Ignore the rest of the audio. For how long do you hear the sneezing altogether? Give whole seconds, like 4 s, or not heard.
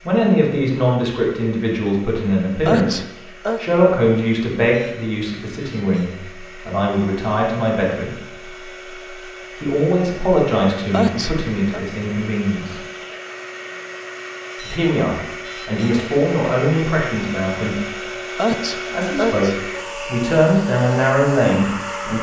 3 s.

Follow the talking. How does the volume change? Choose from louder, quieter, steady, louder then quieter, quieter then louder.
steady.